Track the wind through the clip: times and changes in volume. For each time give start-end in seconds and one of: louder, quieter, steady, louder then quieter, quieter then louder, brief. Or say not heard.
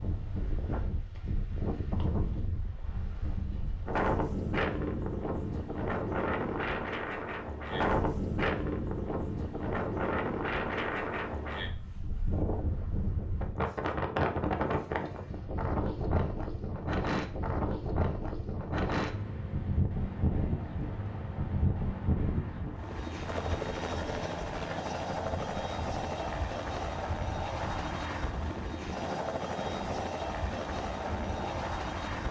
0.0-32.1 quieter.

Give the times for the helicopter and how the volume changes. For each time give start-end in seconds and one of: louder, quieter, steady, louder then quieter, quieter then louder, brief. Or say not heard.
19.9-32.2 louder.